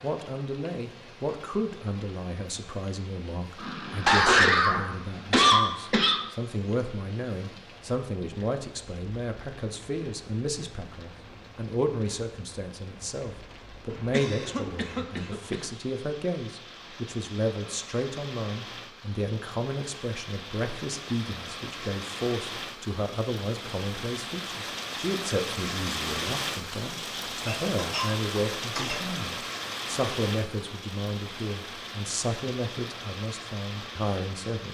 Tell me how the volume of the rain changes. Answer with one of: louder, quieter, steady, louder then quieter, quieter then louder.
louder.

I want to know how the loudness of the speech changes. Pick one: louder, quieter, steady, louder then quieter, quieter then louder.
steady.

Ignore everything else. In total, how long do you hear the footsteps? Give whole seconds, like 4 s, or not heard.
not heard.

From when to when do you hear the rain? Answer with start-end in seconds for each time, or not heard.
0.0-34.7.